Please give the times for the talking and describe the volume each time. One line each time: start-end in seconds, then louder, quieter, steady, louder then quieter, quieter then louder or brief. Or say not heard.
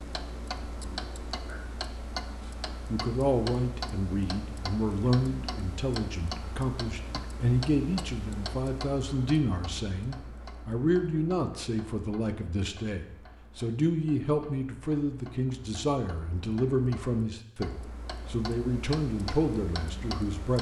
2.9-20.5 steady.